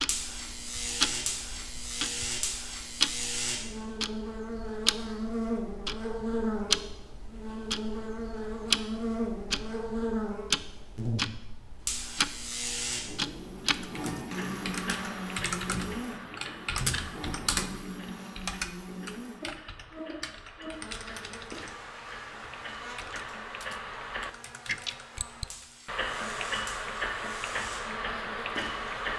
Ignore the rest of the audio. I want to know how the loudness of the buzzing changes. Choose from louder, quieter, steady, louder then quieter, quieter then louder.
quieter.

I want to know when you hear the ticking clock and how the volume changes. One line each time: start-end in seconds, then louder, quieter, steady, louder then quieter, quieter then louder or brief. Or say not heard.
0.0-29.1 quieter then louder.